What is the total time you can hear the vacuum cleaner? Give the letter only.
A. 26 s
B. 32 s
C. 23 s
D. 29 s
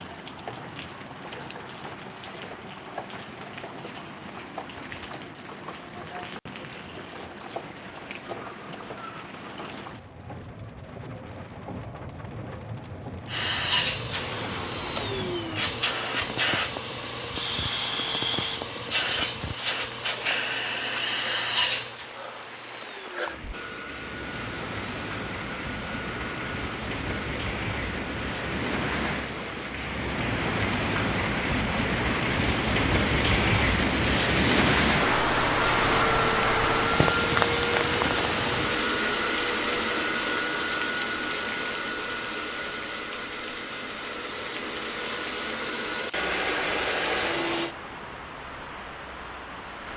D.